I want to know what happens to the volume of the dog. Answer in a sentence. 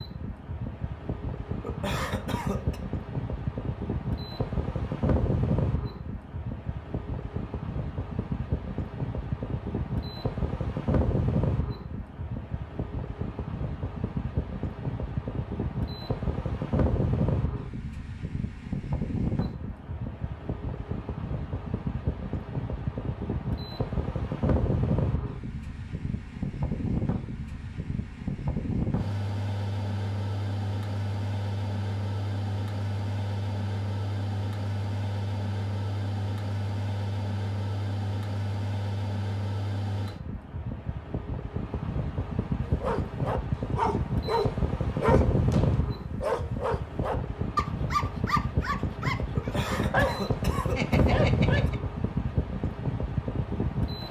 The loudness of the dog stays about the same.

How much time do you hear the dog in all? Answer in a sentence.
You can hear the dog for 9 seconds altogether.